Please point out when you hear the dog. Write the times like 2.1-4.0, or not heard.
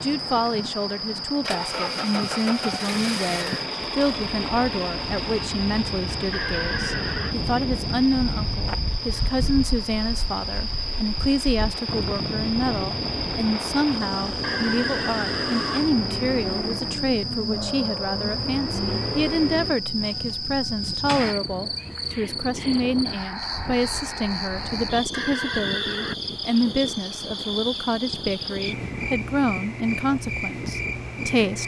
not heard.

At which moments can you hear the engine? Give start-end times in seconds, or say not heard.
0.0-21.4.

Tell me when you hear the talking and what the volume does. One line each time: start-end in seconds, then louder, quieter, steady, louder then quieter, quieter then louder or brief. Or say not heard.
0.0-31.6 steady.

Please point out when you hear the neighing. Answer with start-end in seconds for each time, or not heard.
6.3-7.3, 14.4-15.9, 25.1-26.1.